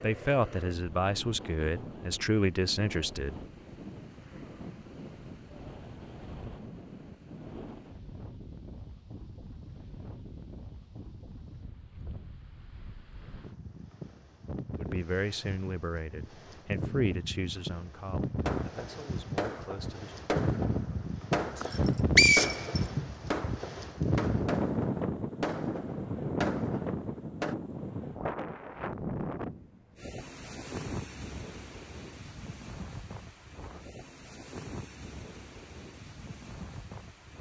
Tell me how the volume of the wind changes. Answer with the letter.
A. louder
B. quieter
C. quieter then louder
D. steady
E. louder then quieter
E.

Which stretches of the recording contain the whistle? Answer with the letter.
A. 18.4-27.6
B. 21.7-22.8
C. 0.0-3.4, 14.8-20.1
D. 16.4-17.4
B.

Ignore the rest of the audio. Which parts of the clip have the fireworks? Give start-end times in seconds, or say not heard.
18.4-27.6.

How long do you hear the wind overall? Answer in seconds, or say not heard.
37 s.